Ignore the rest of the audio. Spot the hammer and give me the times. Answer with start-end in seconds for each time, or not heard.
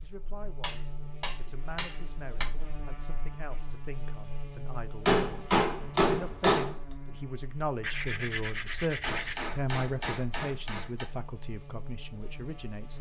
0.6-2.5, 5.0-6.8, 9.0-11.1.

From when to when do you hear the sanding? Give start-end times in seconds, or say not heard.
7.8-9.4.